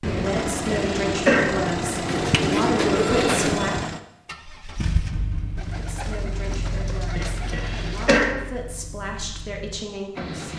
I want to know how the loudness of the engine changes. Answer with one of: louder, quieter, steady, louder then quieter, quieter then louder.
quieter.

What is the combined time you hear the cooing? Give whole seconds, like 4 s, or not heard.
4 s.